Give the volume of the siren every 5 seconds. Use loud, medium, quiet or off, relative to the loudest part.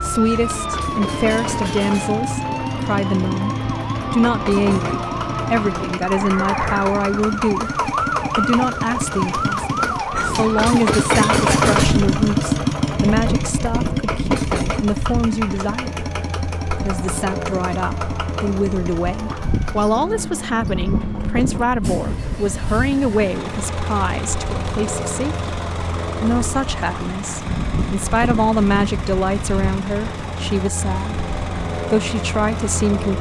loud, loud, loud, medium, medium, medium, medium.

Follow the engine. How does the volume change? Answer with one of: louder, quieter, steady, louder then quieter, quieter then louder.
louder then quieter.